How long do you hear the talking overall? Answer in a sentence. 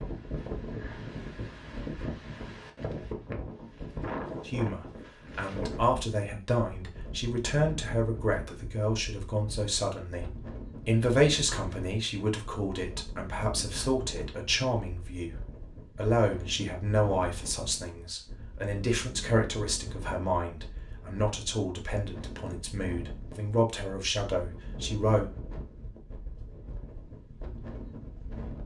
You can hear the talking for 21 seconds altogether.